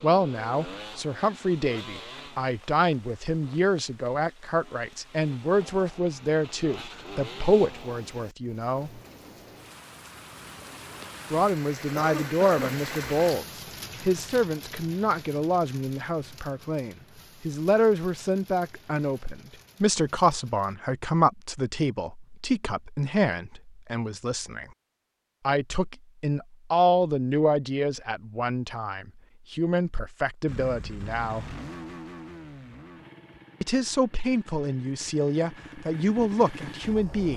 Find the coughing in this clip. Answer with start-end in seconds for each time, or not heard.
11.8-12.8.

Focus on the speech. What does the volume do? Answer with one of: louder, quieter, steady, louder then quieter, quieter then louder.
steady.